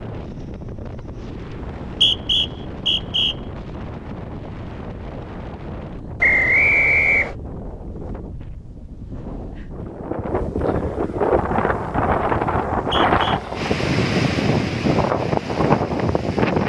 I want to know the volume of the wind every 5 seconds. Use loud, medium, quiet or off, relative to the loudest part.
quiet, quiet, loud, loud.